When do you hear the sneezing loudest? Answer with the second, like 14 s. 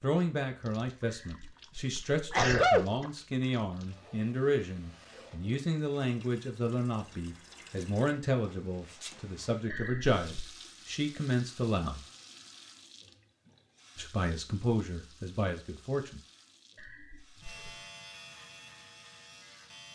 3 s.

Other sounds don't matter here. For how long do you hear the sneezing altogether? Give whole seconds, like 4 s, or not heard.
4 s.